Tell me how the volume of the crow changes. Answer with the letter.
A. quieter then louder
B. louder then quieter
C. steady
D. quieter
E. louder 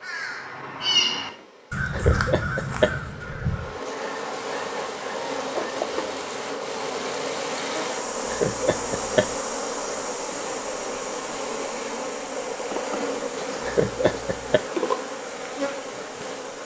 D.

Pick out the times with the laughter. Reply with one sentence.
The laughter can be heard from 1.9 to 3.0 s, from 8.2 to 9.3 s and from 13.7 to 14.6 s.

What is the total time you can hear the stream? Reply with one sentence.
You can hear the stream for 12 seconds altogether.